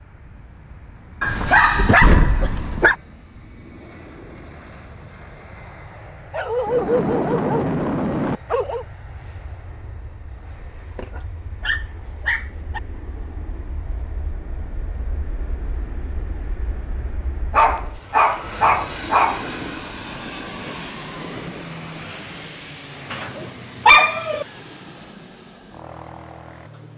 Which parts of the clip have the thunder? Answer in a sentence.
You can hear the thunder from 6.7 to 8.4 s and from 18.4 to 21.6 s.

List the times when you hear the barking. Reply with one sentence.
The barking can be heard from 1.2 to 3.0 s, from 6.3 to 8.8 s, from 10.9 to 12.8 s, from 17.5 to 19.4 s and from 23.1 to 24.4 s.